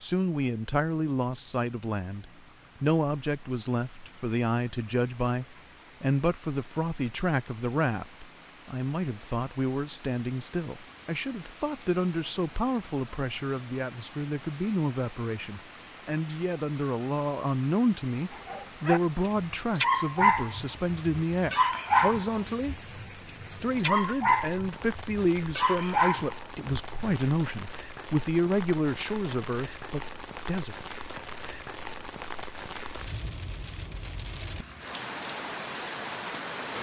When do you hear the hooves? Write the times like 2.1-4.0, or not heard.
not heard.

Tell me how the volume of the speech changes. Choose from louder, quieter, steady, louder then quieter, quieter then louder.
steady.